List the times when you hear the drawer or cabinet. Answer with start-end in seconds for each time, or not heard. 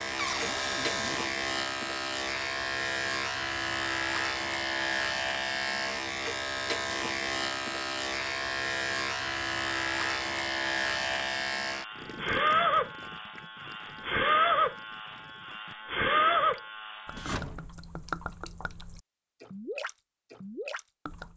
0.1-1.3, 17.1-17.7.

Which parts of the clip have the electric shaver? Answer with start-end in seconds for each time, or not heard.
0.0-17.4.